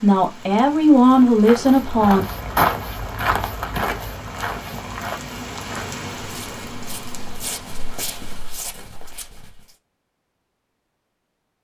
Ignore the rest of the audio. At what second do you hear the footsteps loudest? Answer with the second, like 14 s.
3 s.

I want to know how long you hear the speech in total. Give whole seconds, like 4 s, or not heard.
2 s.